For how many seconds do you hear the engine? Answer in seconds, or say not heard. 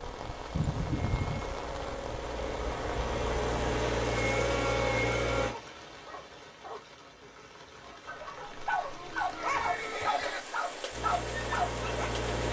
7 s.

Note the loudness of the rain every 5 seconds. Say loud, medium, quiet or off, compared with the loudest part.
loud, medium, loud.